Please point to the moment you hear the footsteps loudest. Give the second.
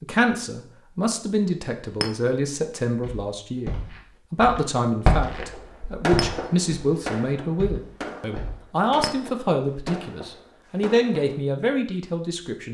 5 s.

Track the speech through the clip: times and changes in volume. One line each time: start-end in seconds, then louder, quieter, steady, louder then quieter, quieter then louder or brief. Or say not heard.
0.0-12.7 steady.